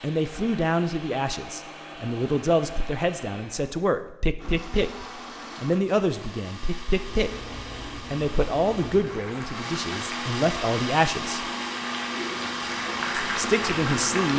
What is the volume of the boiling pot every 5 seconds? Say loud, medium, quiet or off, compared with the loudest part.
off, medium, loud.